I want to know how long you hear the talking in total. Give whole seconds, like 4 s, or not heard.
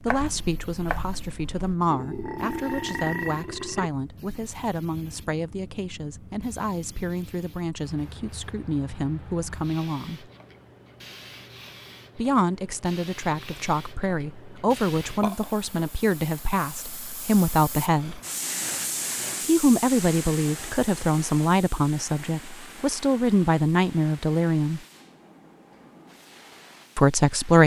22 s.